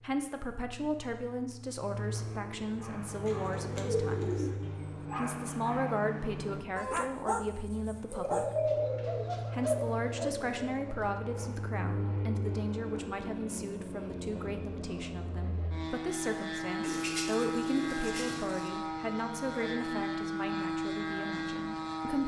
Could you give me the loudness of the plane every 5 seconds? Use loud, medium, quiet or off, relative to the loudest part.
medium, medium, medium, loud, loud.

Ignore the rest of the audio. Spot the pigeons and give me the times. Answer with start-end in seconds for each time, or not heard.
3.2-4.6, 8.1-10.3, 16.8-18.7.